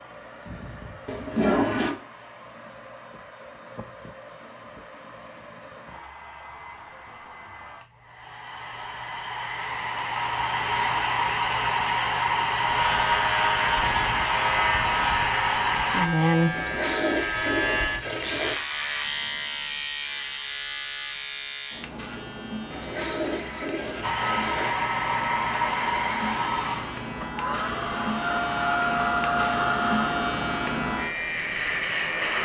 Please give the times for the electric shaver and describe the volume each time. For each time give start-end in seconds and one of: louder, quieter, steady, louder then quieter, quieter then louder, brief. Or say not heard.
12.6-32.4 quieter then louder.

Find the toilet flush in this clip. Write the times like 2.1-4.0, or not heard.
1.1-1.9, 16.5-18.6, 22.7-24.7.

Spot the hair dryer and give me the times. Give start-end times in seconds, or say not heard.
0.0-16.1, 24.0-32.4.